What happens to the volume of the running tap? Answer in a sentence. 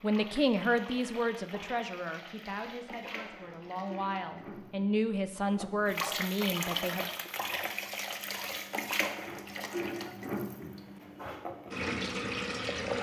The volume of the running tap goes up.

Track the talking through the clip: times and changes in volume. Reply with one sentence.
You can hear the talking from 0.0 to 7.0 s, getting quieter then louder.